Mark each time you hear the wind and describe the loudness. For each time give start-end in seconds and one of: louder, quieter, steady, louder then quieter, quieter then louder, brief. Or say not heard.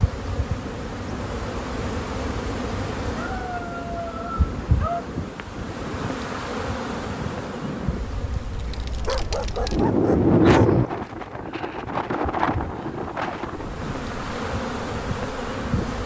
0.2-16.0 louder then quieter.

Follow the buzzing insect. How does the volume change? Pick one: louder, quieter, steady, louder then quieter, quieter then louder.
quieter then louder.